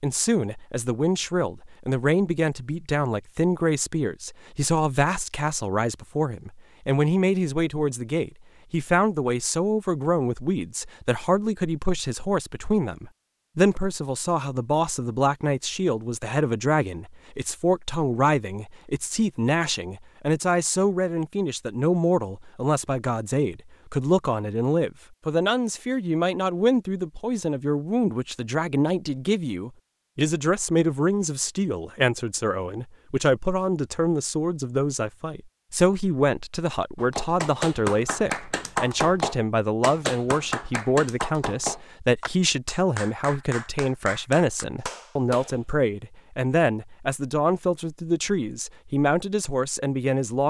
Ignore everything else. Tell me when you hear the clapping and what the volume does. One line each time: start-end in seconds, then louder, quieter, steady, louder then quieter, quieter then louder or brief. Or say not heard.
37.0-45.7 quieter.